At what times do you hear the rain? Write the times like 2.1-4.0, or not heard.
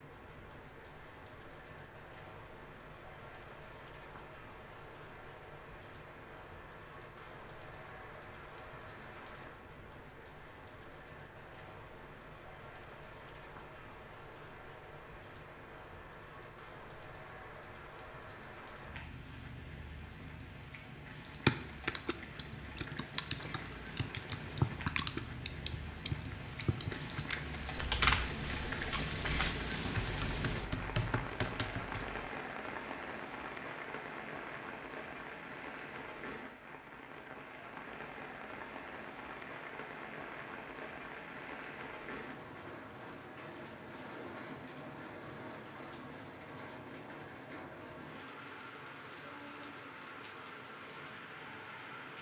0.0-52.1.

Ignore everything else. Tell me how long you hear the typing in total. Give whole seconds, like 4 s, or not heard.
11 s.